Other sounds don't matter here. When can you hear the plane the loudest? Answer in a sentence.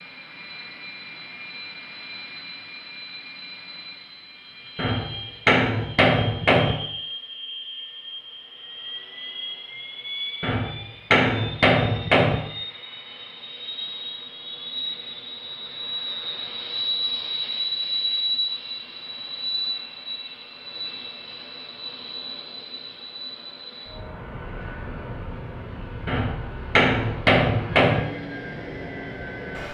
The loudest moment of the plane is at 18 seconds.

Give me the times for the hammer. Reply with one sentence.
The hammer can be heard from 4.8 to 6.8 s, from 10.4 to 12.4 s and from 26.1 to 28.0 s.